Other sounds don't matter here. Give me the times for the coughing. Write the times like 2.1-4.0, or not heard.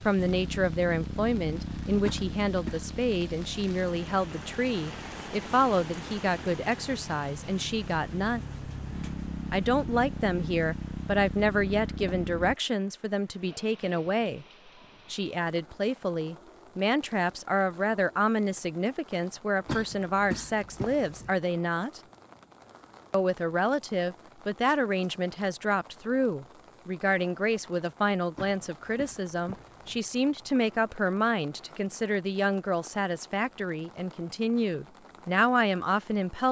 2.0-2.9, 19.6-21.3, 28.4-30.0.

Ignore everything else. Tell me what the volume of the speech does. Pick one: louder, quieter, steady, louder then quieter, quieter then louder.
steady.